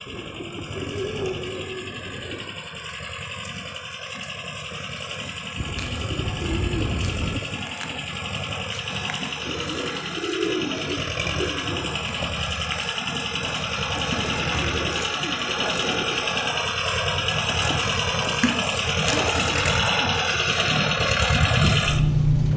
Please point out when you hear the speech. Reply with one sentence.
The speech can't be heard in this clip.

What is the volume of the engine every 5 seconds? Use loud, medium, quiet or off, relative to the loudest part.
quiet, medium, medium, loud, loud.